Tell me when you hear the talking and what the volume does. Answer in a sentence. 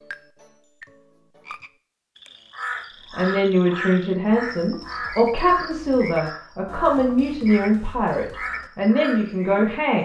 The talking can be heard from 3.1 to 10.0 s, at a steady volume.